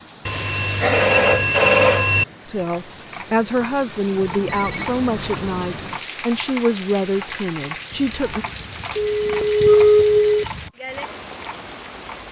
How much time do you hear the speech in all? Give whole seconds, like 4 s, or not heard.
6 s.